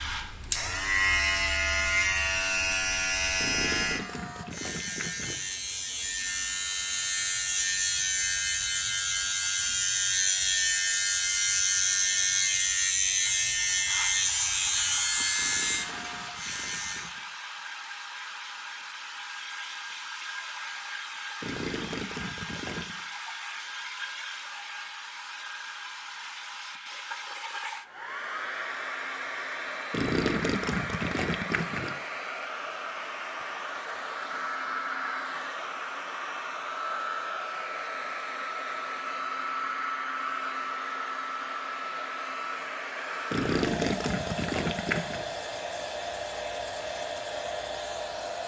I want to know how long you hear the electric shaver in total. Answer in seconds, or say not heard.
17 s.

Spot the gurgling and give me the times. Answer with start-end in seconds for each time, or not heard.
3.4-5.4, 15.3-17.2, 21.4-23.0, 29.9-31.9, 43.3-45.2.